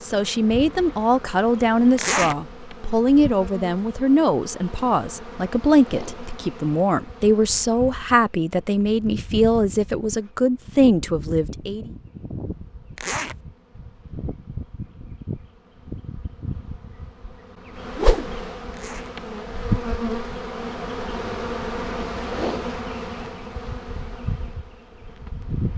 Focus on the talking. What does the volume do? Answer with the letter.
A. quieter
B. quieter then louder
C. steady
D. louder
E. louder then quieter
C.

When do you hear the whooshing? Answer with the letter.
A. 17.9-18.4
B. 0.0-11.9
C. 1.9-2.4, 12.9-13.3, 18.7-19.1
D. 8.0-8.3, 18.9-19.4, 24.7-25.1
A.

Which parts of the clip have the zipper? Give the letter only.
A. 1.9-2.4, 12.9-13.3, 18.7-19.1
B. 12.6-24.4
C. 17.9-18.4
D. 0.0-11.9
A.